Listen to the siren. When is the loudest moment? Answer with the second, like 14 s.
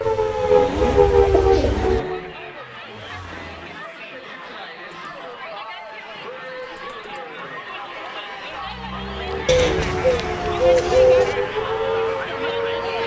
1 s.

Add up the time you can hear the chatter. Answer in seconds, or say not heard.
13 s.